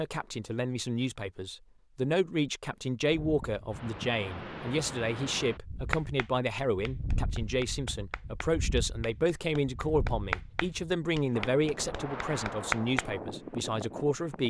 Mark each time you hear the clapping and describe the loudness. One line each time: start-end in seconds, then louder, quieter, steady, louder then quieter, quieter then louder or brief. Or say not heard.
5.9-13.1 louder then quieter.